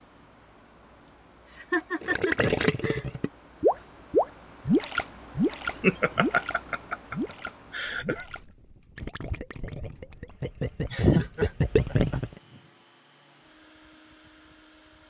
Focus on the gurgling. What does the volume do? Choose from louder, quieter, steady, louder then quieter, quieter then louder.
quieter then louder.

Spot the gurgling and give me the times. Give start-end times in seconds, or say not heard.
2.0-12.3.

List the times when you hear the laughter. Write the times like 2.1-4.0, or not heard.
1.1-3.0, 5.7-8.2, 10.7-12.2.